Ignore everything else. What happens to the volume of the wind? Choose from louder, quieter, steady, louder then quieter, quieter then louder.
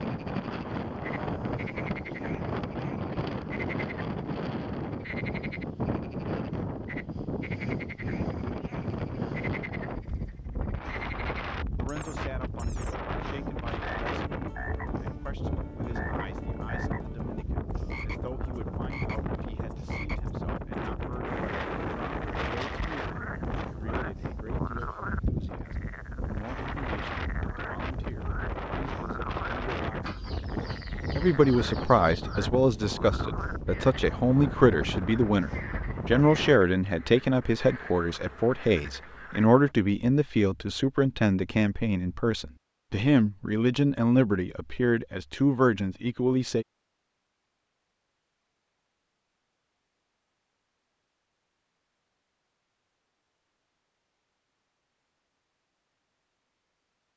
steady.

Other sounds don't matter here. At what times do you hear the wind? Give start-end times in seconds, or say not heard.
0.0-36.6.